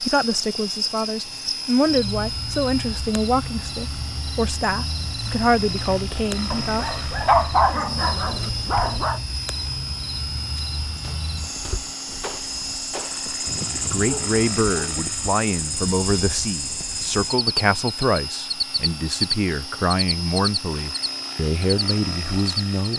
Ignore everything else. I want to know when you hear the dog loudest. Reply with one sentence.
The loudest moment of the dog is at 7 seconds.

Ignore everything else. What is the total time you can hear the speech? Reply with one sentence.
The speech can be heard for 16 seconds in total.